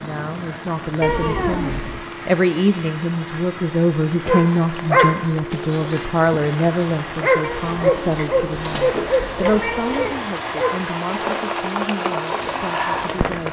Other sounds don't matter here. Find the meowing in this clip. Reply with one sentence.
You can hear the meowing from 1.0 to 2.0 s and from 7.4 to 10.2 s.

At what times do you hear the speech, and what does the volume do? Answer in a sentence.
The speech can be heard from 0.0 to 13.4 s, getting quieter.